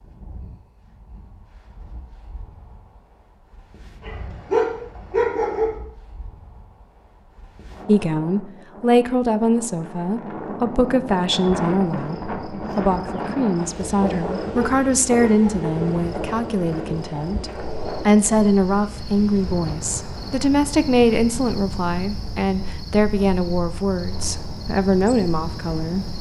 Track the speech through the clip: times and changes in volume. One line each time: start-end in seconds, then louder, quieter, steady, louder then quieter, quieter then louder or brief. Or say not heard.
7.8-26.1 steady.